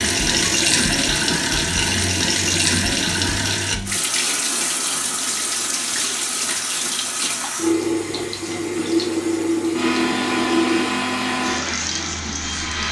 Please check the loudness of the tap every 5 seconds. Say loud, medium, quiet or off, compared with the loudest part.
loud, loud, medium.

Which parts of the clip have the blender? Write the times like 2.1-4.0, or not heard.
9.7-12.8.